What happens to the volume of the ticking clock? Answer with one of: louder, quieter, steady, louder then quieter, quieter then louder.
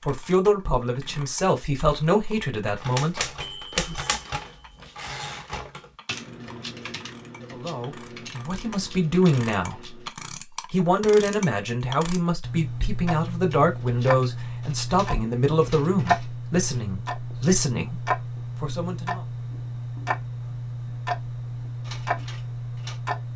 louder.